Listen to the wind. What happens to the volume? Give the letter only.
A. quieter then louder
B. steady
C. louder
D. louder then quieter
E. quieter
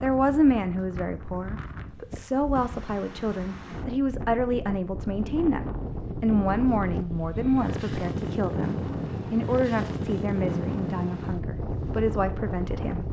C.